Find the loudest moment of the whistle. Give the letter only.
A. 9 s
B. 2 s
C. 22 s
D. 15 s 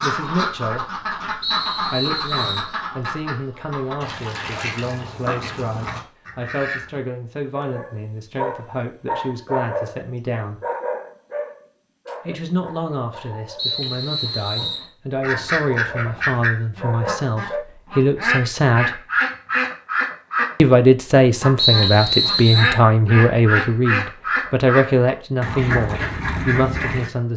C.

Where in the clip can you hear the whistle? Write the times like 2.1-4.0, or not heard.
1.4-2.7, 13.6-14.8, 21.6-22.8.